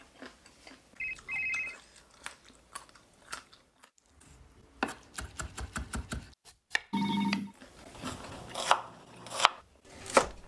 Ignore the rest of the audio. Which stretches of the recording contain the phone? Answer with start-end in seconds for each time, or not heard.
1.0-1.8, 6.9-7.5.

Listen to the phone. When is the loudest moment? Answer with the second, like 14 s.
7 s.